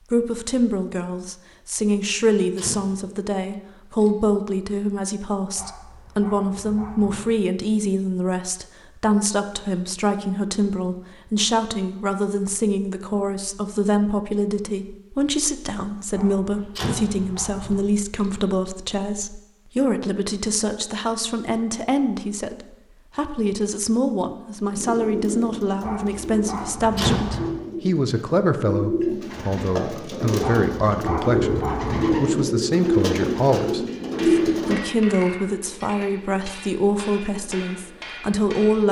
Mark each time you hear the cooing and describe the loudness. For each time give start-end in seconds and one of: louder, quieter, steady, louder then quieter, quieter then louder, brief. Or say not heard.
24.7-34.8 louder.